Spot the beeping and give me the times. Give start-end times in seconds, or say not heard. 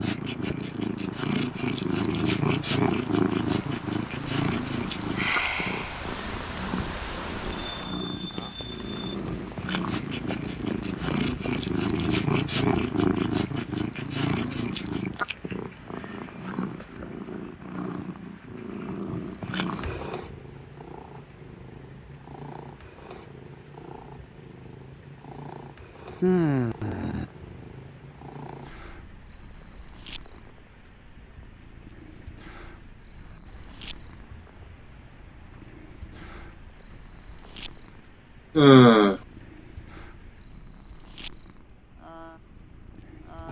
7.5-9.2.